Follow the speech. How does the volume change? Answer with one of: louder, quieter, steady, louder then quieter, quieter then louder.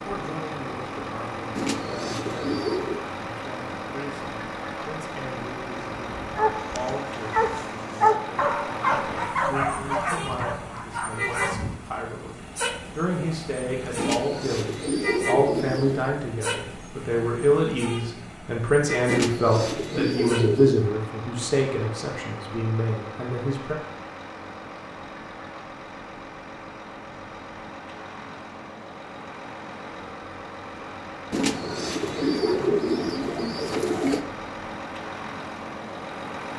louder.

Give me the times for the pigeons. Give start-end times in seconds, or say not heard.
1.6-3.0, 13.9-16.1, 19.1-20.9, 31.3-34.2.